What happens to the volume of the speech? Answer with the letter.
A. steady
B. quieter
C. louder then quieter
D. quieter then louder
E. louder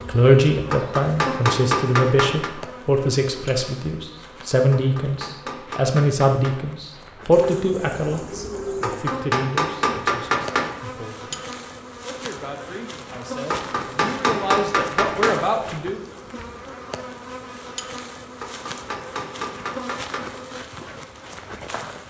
D.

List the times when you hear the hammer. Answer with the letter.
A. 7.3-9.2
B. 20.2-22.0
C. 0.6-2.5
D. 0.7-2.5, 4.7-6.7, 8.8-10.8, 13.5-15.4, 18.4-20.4
D.